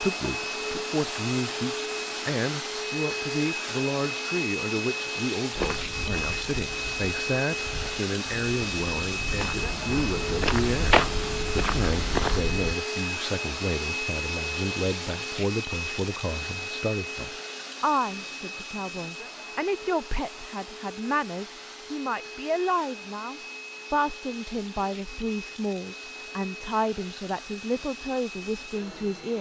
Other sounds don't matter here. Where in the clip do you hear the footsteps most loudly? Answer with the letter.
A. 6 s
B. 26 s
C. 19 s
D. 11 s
D.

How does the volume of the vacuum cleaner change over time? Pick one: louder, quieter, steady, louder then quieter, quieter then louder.
quieter.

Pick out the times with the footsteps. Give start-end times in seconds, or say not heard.
5.5-12.8.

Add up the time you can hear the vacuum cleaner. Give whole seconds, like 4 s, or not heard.
29 s.